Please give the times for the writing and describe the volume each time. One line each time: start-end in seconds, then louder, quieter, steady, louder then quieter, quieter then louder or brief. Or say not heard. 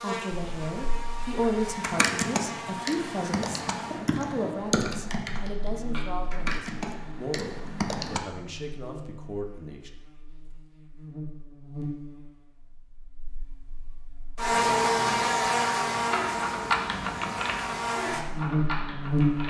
not heard.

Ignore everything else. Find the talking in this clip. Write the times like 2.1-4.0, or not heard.
0.0-9.9.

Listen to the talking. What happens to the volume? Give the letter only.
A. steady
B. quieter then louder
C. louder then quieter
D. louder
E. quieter
E.